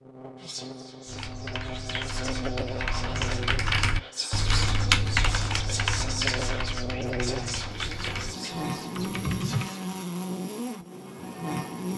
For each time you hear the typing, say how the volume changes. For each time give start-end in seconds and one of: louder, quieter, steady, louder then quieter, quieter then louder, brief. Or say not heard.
1.1-9.8 louder then quieter.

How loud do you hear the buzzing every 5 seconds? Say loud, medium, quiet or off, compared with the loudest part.
medium, loud, loud.